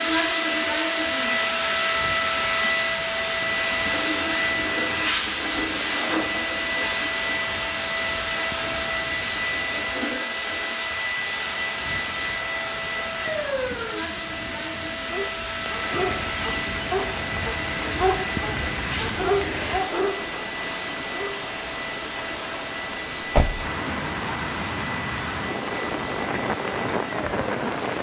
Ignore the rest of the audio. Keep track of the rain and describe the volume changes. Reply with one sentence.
The loudness of the rain goes up.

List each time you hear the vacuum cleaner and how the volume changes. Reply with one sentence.
The vacuum cleaner can be heard from 0.0 to 27.9 s, getting quieter.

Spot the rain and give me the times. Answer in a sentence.
You can hear the rain from 0.1 to 27.9 s.